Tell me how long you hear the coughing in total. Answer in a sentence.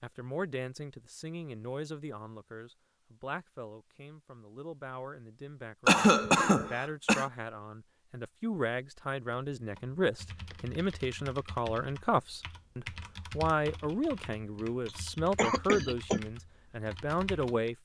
You can hear the coughing for 3 seconds altogether.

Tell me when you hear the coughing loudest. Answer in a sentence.
The volume of the coughing peaks at 6 seconds.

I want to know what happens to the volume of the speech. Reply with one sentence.
The volume of the speech goes up.